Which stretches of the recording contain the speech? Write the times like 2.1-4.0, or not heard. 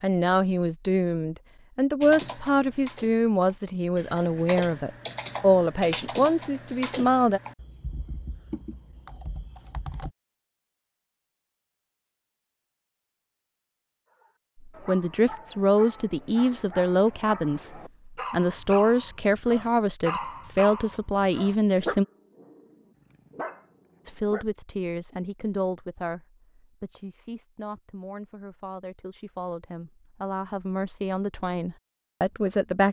0.0-7.4, 14.7-22.1, 24.1-32.8.